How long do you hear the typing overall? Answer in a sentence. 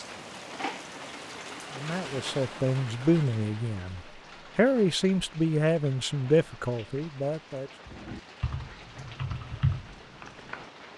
You can hear the typing for 3 seconds altogether.